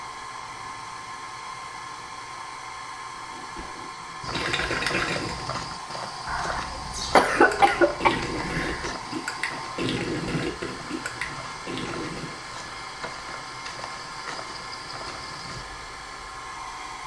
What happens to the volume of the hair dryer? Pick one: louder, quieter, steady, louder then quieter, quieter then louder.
steady.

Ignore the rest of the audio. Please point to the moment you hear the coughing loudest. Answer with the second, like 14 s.
7 s.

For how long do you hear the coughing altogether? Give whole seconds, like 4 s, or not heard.
3 s.